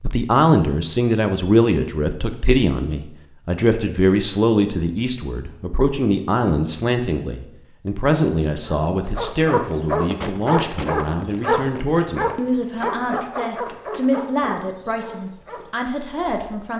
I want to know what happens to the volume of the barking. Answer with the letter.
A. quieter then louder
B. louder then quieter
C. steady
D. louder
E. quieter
E.